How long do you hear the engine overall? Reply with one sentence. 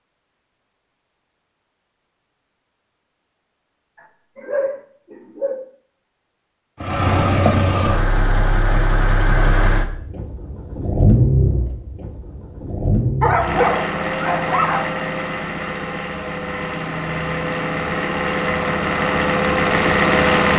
You can hear the engine for 14 seconds altogether.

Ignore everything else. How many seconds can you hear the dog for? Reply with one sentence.
The dog can be heard for 3 seconds in total.